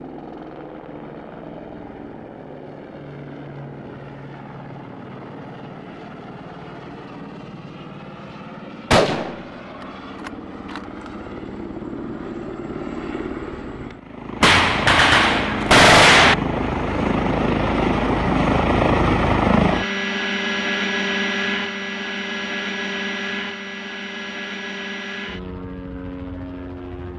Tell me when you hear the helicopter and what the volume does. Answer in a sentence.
You can hear the helicopter from 0.0 to 27.1 s, getting louder then quieter.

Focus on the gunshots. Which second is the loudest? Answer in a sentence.
The volume of the gunshots peaks at 16 seconds.